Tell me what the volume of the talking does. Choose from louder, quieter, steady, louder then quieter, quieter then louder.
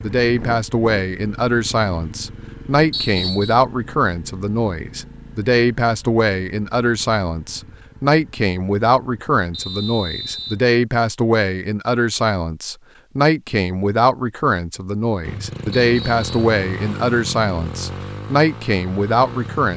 steady.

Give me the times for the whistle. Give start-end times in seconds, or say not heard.
2.9-3.5, 9.5-10.6, 15.8-16.6.